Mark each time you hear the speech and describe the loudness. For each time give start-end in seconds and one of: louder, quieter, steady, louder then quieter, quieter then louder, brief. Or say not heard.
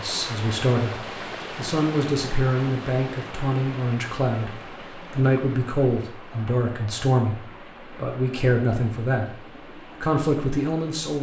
0.0-9.4 steady
10.0-11.1 brief.